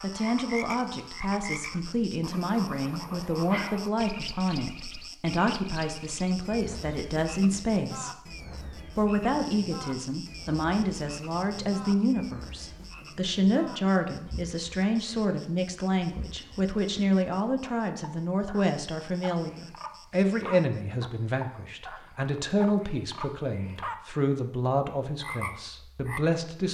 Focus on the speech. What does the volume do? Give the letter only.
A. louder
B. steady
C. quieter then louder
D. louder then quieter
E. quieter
B.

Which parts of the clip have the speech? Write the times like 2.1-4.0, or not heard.
0.0-8.3, 8.9-26.6.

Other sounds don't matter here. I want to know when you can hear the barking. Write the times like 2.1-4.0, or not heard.
not heard.